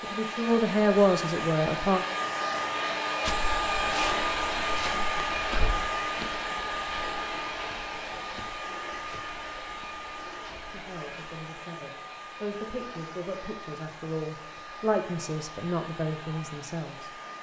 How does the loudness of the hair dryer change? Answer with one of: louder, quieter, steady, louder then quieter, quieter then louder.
quieter.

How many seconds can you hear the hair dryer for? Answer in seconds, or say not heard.
17 s.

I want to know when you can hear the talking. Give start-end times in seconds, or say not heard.
0.0-2.0, 10.6-17.1.